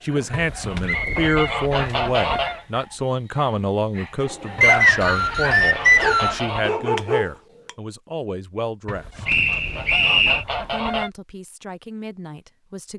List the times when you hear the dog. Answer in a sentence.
You can hear the dog from 0.0 to 7.8 s.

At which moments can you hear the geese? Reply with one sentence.
You can hear the geese from 0.3 to 2.6 s, from 4.5 to 6.8 s and from 8.8 to 11.1 s.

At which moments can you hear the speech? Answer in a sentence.
You can hear the speech from 0.0 to 9.2 s and from 10.6 to 12.9 s.